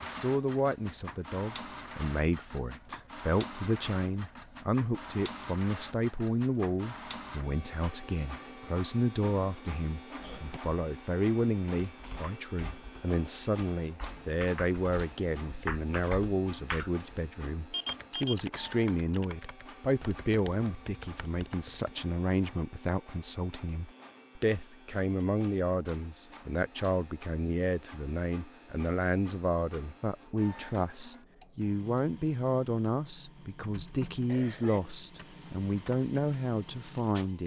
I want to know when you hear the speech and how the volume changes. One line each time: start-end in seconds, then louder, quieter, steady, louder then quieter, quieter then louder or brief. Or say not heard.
0.0-37.4 steady.